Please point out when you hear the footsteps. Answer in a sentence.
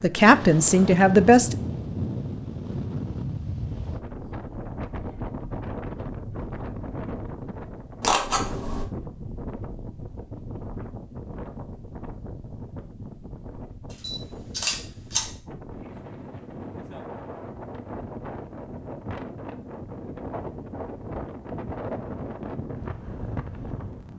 The footsteps can't be heard in this clip.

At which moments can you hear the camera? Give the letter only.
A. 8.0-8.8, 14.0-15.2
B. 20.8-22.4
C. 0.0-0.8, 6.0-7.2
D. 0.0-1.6
A.